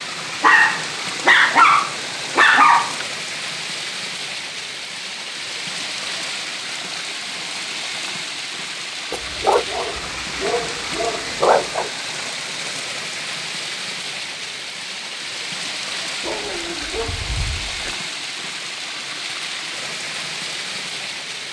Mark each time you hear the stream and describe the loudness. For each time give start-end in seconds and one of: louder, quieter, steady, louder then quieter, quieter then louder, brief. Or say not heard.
0.0-21.4 steady.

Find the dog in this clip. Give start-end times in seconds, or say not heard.
0.4-3.0, 9.1-11.9, 16.2-17.9.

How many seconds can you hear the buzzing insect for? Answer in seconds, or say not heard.
not heard.